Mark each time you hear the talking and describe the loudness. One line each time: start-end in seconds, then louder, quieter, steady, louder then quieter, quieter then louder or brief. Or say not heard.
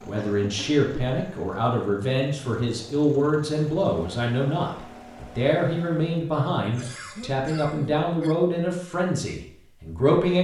0.1-10.3 steady.